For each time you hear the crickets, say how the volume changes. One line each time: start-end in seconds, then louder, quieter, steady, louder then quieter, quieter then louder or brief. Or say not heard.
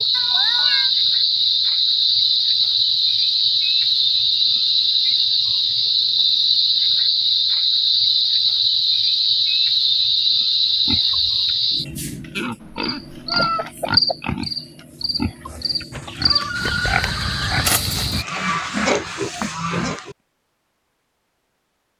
0.0-18.2 quieter.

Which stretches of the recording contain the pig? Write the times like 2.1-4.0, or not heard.
10.7-20.1.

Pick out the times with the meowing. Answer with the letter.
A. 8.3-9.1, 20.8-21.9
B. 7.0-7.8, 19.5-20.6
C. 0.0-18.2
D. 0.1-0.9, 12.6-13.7
D.